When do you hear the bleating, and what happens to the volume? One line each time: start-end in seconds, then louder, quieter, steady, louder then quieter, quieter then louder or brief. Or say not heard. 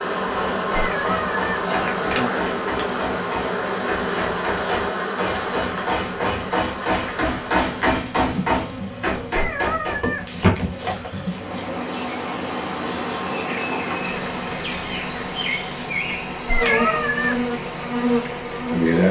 not heard.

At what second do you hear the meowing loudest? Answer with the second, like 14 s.
17 s.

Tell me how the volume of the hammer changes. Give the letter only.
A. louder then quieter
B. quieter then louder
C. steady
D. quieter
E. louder
E.